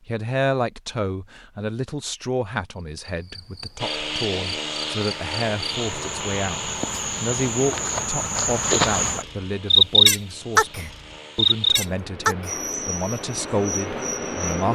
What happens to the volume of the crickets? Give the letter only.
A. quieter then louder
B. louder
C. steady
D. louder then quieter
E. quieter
D.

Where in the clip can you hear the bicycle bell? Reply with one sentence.
The bicycle bell can't be heard in this clip.